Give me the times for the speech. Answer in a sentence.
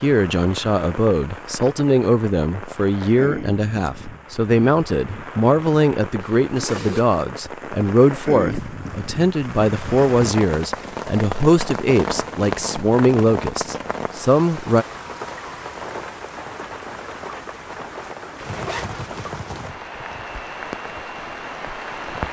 The speech can be heard from 0.0 to 14.8 s.